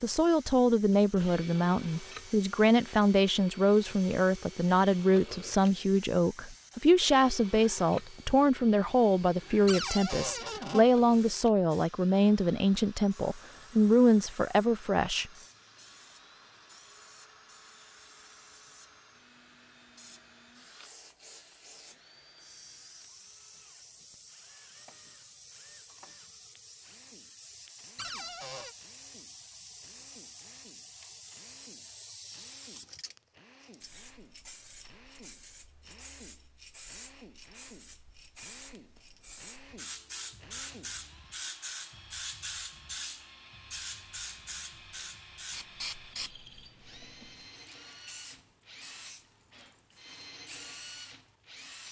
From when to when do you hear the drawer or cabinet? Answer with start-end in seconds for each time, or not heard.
9.7-10.8, 27.9-28.8.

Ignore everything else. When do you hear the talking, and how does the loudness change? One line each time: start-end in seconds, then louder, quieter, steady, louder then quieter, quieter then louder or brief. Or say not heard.
0.0-15.3 steady.